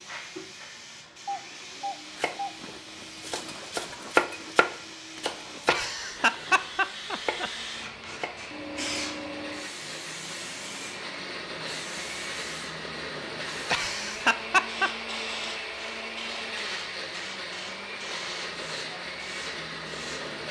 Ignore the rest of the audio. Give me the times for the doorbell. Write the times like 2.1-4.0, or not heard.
1.2-2.5.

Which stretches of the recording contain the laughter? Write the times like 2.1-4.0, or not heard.
5.7-7.5, 13.7-14.9.